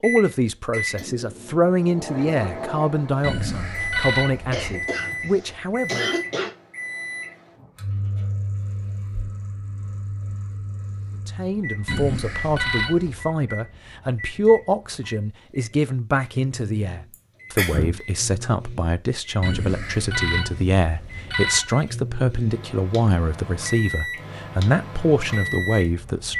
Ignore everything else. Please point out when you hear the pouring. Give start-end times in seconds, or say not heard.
not heard.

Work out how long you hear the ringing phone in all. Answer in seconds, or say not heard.
5 s.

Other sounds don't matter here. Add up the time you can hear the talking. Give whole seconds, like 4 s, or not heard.
21 s.